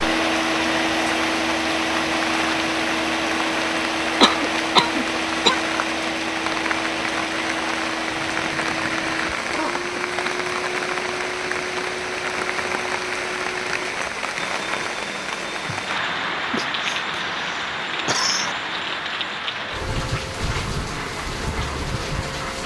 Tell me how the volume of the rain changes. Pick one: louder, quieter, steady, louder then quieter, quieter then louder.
steady.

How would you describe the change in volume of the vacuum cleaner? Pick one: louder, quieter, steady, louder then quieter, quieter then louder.
quieter.